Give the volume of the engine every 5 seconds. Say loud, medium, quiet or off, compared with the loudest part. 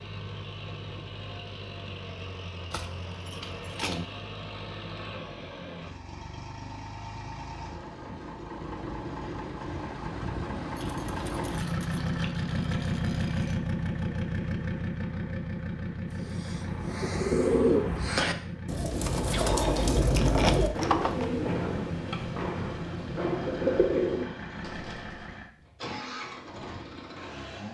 medium, medium, loud, medium, medium, medium.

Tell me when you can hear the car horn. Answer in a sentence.
The car horn can't be heard in this clip.